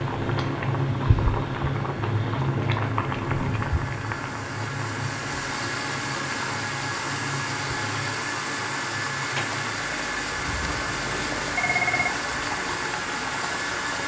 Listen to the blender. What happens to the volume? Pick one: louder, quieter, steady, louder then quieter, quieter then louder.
louder.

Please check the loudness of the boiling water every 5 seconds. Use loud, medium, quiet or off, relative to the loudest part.
loud, medium, medium.